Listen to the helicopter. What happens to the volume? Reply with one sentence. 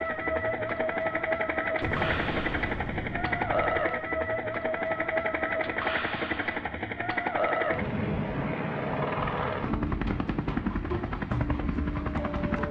The loudness of the helicopter stays about the same.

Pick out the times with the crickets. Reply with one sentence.
The crickets can't be heard in this clip.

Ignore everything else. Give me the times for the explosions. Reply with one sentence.
You can hear the explosions from 1.8 to 3.9 s.